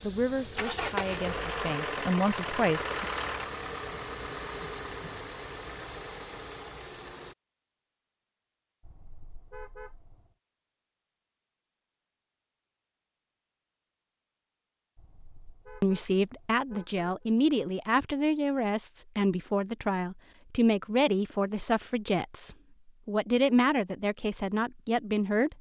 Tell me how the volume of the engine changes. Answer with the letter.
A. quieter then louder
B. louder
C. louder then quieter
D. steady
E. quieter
E.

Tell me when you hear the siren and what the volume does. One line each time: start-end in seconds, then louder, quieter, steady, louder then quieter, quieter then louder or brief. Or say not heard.
not heard.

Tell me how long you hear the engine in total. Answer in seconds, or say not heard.
7 s.